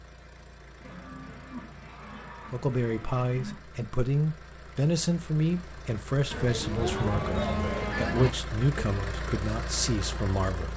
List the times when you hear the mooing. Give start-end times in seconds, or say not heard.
0.8-3.6, 6.3-8.3.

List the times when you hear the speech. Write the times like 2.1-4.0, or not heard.
2.5-10.7.